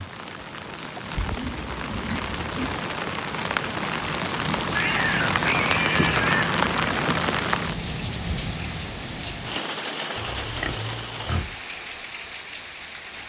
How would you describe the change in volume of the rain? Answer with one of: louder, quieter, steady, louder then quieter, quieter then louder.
louder then quieter.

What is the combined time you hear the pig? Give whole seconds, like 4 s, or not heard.
5 s.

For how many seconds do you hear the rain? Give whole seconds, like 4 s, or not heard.
13 s.